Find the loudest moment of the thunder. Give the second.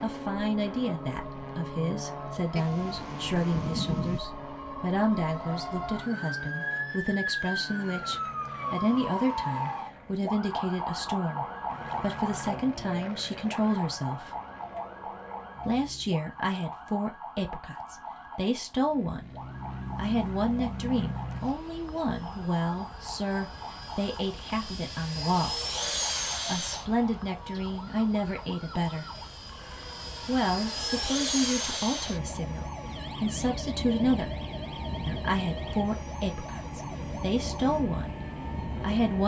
4 s.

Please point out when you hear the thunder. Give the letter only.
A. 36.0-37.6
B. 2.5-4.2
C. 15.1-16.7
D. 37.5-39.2
B.